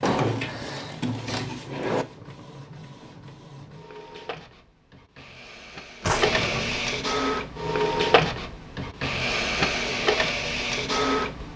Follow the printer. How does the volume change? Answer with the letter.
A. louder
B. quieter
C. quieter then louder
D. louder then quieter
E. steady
A.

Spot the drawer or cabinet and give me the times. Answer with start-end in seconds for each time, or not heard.
0.0-2.0, 6.0-6.8.